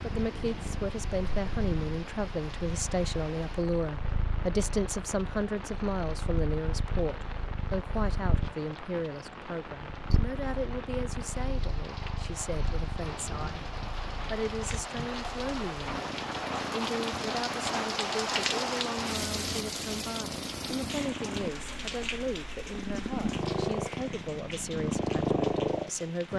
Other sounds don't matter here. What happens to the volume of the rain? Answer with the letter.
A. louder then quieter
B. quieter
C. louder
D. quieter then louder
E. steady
A.